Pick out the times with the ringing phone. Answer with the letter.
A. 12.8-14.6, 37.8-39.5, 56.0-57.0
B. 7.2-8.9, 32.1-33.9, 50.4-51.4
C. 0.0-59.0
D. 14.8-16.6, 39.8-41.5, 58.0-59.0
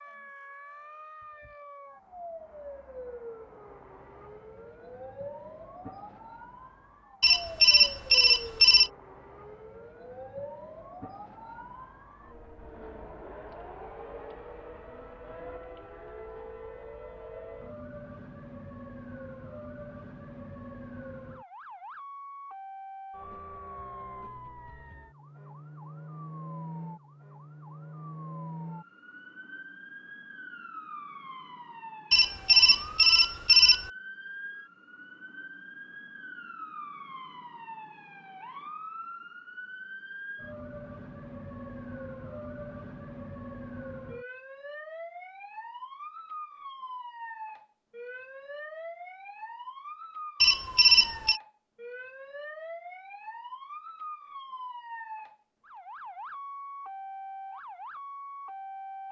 B.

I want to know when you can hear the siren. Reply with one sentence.
You can hear the siren from 0.0 to 59.0 s.